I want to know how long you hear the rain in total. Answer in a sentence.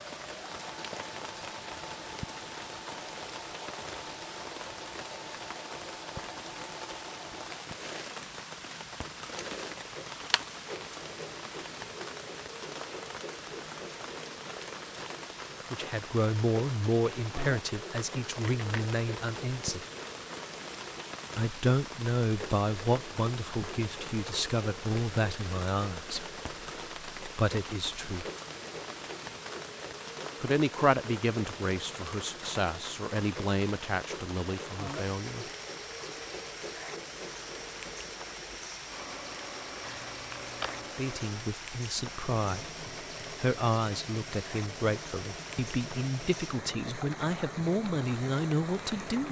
You can hear the rain for 49 seconds altogether.